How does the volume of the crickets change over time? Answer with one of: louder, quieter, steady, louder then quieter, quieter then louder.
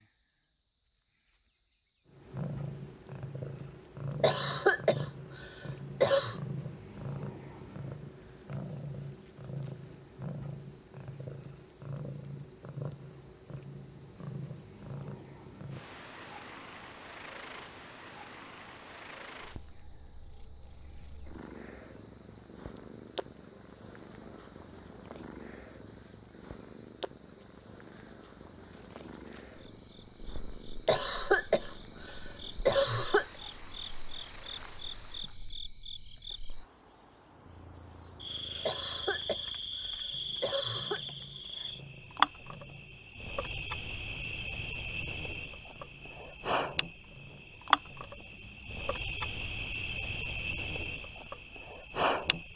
louder.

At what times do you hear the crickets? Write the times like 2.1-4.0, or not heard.
0.0-52.5.